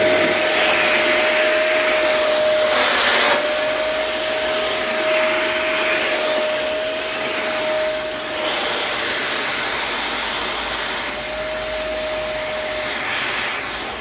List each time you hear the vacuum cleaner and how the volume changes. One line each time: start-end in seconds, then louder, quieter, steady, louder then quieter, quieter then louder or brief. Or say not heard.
0.0-13.9 quieter.